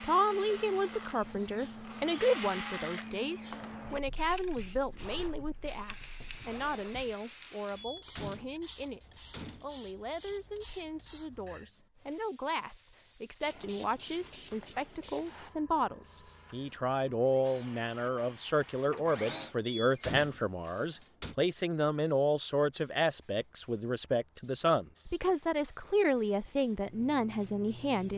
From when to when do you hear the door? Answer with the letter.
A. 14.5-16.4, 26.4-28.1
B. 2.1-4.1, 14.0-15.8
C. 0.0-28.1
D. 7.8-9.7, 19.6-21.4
D.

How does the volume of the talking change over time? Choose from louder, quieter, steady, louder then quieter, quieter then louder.
quieter then louder.